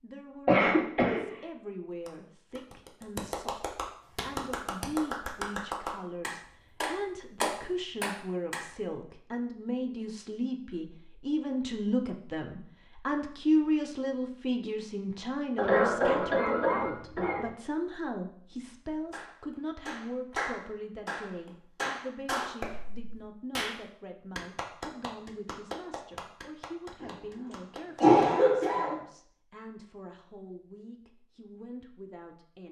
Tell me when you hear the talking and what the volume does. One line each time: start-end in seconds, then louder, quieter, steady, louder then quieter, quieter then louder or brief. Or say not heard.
0.0-32.6 louder then quieter.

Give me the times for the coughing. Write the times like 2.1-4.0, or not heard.
0.5-1.4, 15.6-17.5, 27.0-28.9.